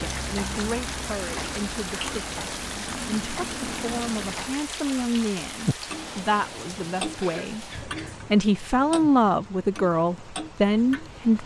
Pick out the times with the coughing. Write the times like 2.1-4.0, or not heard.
7.2-8.2.